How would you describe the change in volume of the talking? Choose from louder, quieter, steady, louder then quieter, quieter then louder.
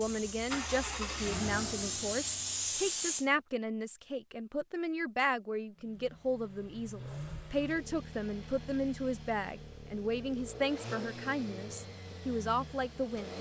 steady.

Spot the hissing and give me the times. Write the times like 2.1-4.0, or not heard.
0.0-3.3.